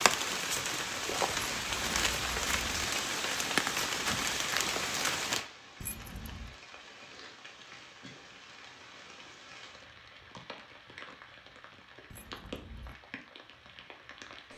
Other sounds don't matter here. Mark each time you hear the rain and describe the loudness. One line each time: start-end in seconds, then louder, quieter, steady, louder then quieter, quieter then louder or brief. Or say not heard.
0.0-14.5 quieter.